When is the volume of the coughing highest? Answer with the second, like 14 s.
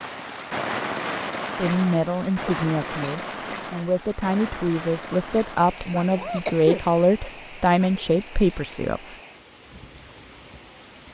7 s.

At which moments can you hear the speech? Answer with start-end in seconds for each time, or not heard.
1.6-9.2.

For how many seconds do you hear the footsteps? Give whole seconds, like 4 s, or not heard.
not heard.